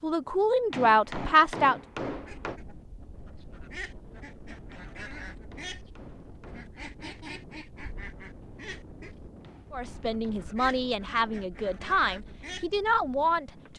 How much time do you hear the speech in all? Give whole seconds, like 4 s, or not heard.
6 s.